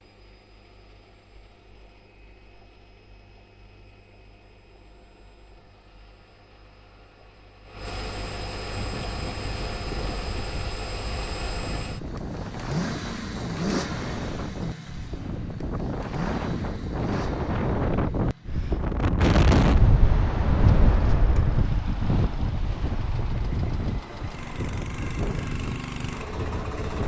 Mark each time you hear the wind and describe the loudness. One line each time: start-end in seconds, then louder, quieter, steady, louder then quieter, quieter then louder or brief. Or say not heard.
8.8-27.0 louder then quieter.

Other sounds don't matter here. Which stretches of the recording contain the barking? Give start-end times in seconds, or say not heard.
not heard.